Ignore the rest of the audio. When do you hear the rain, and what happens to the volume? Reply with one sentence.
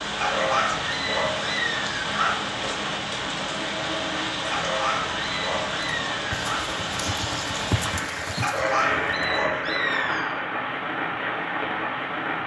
You can hear the rain from 0.0 to 12.4 s, at a steady volume.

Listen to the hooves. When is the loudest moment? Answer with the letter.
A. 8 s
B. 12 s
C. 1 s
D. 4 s
A.